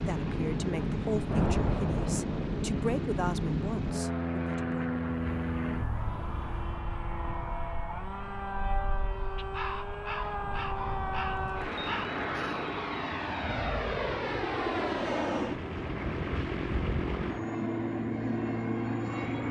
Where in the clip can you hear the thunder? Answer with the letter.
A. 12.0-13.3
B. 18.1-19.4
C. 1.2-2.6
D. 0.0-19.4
C.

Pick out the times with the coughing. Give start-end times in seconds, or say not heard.
not heard.